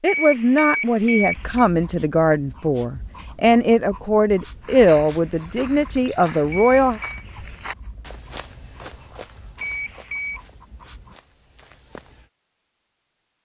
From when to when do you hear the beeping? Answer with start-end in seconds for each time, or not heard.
0.1-1.6, 6.5-7.2, 9.6-10.4.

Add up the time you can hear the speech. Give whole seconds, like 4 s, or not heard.
7 s.